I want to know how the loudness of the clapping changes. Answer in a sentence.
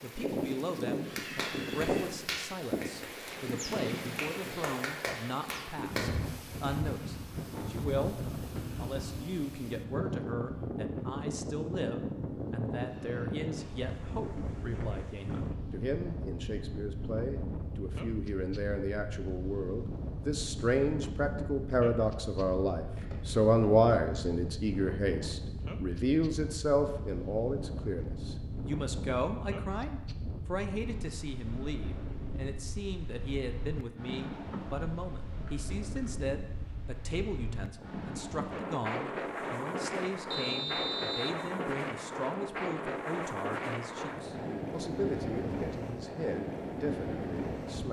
The loudness of the clapping goes down, then up.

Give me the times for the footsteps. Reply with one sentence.
You can't hear the footsteps here.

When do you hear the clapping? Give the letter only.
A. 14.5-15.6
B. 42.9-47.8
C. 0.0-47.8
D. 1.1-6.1
D.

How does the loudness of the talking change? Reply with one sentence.
The loudness of the talking goes up, then down.